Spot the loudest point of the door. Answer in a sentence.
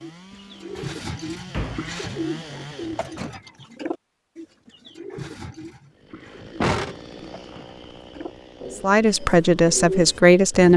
The volume of the door peaks at 7 seconds.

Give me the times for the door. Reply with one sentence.
The door can be heard from 0.8 to 1.9 s and from 6.6 to 7.4 s.